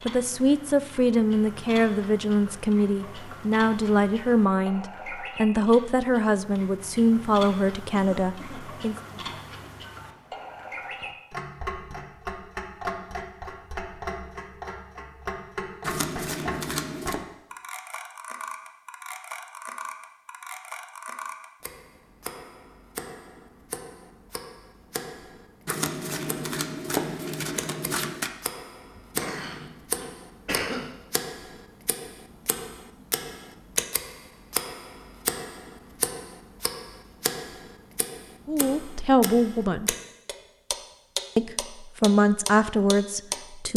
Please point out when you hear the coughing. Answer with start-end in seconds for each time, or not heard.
7.9-9.2, 28.9-30.9.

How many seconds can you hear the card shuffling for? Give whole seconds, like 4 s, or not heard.
4 s.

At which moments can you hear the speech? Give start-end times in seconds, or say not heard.
0.0-8.9, 38.5-40.0, 41.4-43.7.